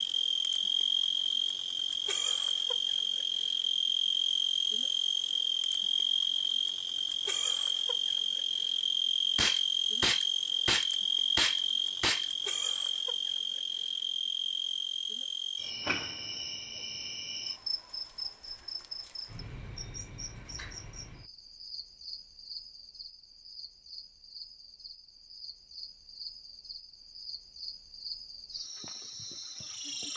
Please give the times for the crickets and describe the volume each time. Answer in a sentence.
You can hear the crickets from 0.0 to 30.1 s, getting quieter.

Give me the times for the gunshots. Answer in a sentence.
You can hear the gunshots from 9.3 to 12.3 s.